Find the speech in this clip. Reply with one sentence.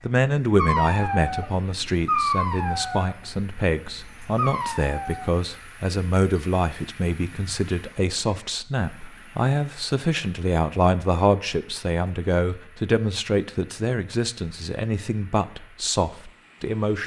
You can hear the speech from 0.0 to 17.0 s.